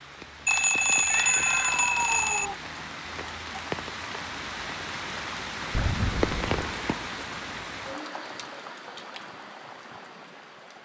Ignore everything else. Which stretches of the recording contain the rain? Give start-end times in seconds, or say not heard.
0.0-10.8.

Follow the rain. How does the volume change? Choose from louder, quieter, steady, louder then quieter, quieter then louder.
louder then quieter.